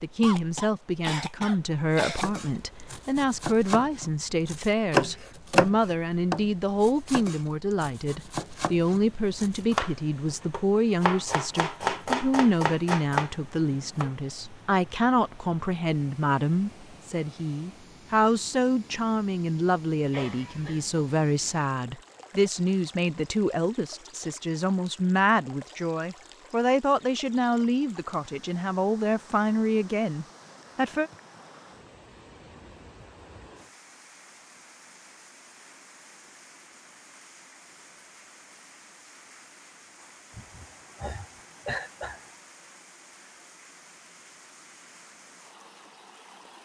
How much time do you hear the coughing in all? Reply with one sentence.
The coughing can be heard for 5 seconds in total.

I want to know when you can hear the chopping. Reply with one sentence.
The chopping can be heard from 2.1 to 14.2 s.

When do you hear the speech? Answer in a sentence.
You can hear the speech from 0.0 to 31.1 s.